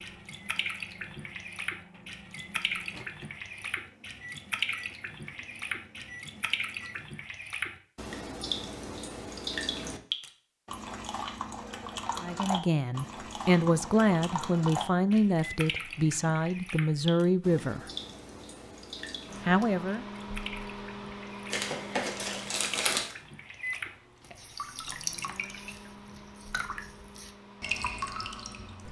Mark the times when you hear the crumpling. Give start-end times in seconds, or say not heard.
21.5-23.1.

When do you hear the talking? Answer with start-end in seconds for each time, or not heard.
12.2-17.9, 19.4-20.1.